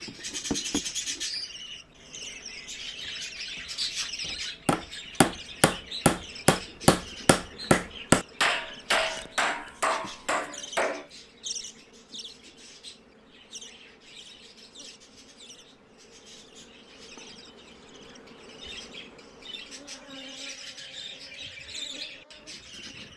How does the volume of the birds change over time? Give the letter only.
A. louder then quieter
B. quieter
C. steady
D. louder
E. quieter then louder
E.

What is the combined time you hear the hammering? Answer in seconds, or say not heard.
7 s.